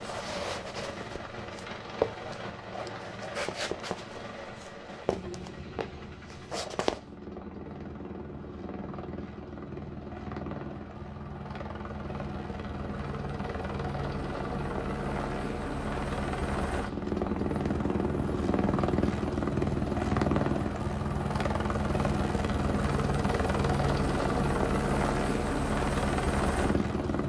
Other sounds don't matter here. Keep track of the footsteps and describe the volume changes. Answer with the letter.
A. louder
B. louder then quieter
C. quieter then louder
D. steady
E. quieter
B.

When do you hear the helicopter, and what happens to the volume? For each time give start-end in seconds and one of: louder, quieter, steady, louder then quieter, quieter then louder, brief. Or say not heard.
0.0-27.2 louder.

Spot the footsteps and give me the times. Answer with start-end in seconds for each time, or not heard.
0.0-7.0.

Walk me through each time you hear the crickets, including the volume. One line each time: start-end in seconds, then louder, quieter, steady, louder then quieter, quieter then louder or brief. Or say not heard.
not heard.